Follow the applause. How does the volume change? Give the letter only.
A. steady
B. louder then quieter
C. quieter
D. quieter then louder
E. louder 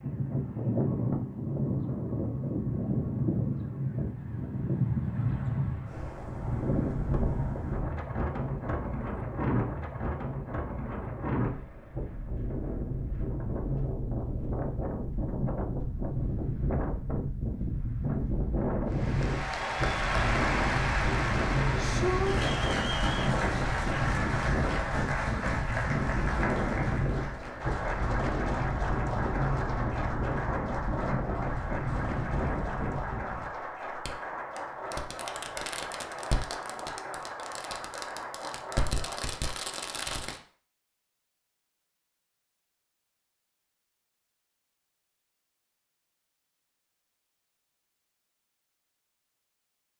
C.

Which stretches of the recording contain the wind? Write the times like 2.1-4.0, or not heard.
0.0-33.5.